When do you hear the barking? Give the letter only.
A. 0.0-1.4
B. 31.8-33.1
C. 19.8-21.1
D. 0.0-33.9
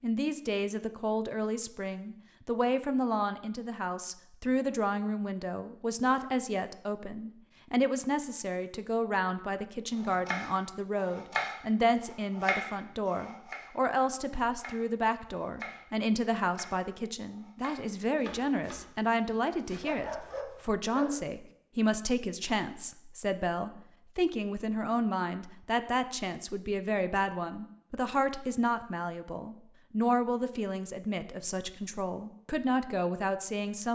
C.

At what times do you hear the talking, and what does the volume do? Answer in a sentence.
You can hear the talking from 0.0 to 33.9 s, at a steady volume.